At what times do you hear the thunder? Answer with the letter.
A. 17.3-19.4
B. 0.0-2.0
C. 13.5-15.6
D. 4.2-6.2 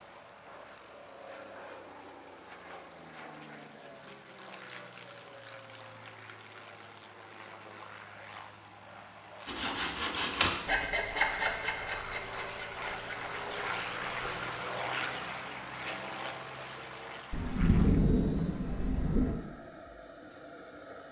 A.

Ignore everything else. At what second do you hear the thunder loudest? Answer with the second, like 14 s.
18 s.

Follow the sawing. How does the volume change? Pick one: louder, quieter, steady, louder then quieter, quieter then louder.
quieter.